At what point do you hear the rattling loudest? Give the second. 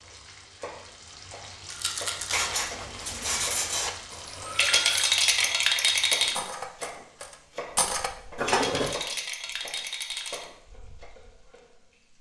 5 s.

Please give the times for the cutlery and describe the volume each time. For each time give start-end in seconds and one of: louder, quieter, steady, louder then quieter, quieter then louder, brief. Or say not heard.
2.3-8.9 quieter then louder.